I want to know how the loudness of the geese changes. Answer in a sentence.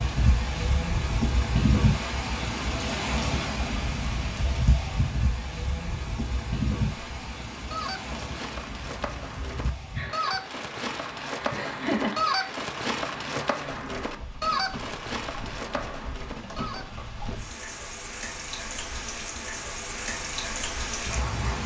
The volume of the geese goes up, then down.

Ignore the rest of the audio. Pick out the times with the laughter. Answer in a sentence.
You can hear the laughter from 11.5 to 12.6 s.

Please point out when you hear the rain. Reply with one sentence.
You can hear the rain from 0.0 to 21.6 s.